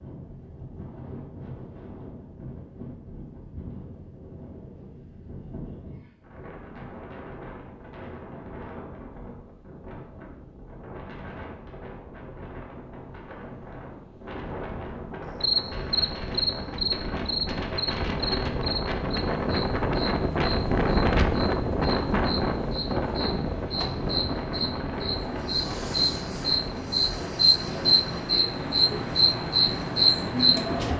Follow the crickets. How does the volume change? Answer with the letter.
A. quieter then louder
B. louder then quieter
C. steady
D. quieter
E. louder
A.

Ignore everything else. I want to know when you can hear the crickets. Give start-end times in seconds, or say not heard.
15.4-30.9.